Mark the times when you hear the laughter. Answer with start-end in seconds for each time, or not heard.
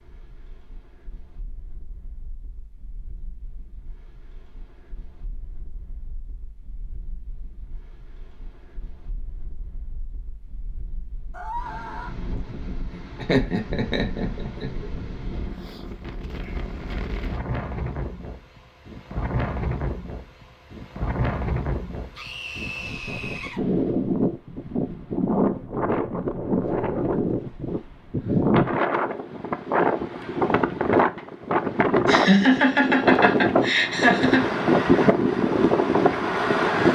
13.2-14.8, 32.0-34.5.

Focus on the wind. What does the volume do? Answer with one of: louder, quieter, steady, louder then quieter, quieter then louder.
louder.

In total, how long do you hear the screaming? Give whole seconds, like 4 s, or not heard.
2 s.